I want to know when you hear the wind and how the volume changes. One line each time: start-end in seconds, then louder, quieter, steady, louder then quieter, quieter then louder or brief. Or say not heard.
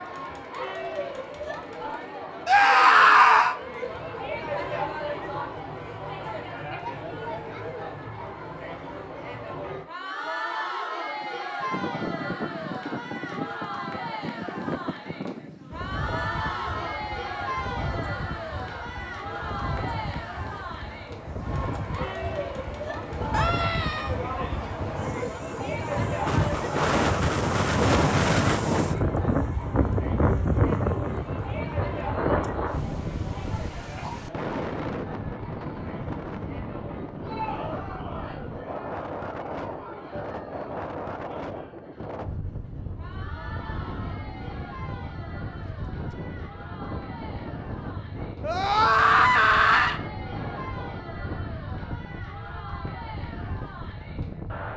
11.2-54.7 louder then quieter.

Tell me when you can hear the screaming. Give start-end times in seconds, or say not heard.
2.5-3.5, 23.3-24.1, 48.4-50.0.